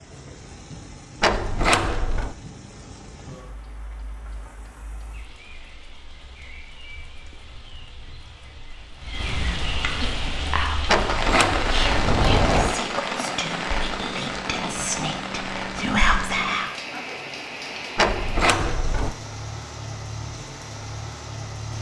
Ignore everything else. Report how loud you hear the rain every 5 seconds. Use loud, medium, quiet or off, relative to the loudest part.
quiet, medium, loud, medium, medium.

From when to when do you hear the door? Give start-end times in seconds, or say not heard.
1.2-2.4, 10.8-12.8, 17.9-19.1.